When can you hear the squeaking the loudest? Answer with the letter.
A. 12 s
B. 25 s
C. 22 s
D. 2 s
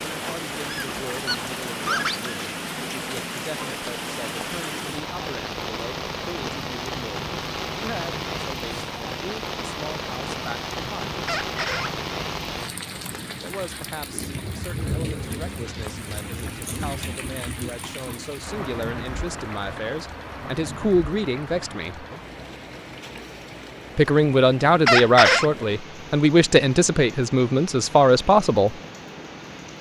B.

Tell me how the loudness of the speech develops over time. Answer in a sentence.
The volume of the speech goes up.